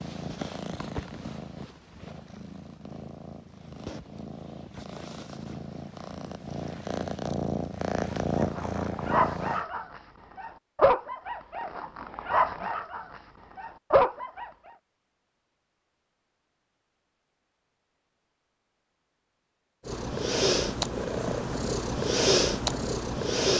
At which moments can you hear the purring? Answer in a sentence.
The purring can be heard from 0.0 to 9.7 s and from 19.9 to 23.5 s.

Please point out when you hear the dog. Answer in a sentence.
The dog can be heard from 8.3 to 14.5 s.